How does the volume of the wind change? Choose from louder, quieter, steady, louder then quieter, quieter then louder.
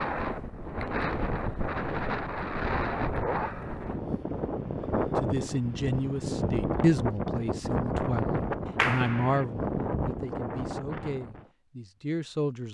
steady.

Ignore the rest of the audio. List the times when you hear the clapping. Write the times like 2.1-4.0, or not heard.
8.8-9.4.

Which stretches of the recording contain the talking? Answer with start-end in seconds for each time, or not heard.
5.2-12.6.